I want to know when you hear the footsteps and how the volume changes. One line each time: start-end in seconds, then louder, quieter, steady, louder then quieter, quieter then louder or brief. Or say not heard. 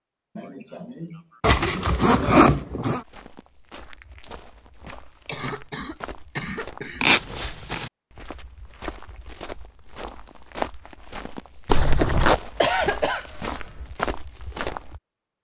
3.0-15.0 louder.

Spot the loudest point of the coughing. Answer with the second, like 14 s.
13 s.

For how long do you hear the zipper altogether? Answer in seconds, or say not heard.
3 s.